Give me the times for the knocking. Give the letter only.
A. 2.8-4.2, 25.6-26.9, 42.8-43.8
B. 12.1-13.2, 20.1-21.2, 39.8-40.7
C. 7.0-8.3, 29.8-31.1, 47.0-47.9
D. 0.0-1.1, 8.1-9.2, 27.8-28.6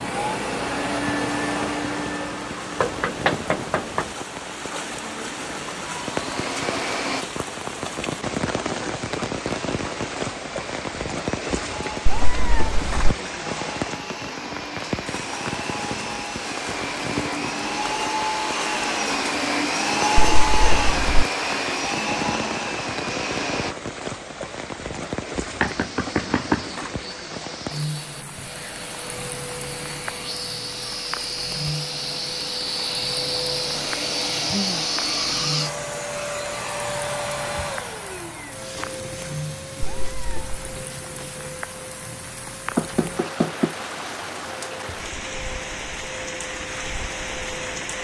A.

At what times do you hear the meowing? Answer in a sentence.
You can hear the meowing from 12.1 to 13.2 s, from 20.1 to 21.2 s and from 39.8 to 40.7 s.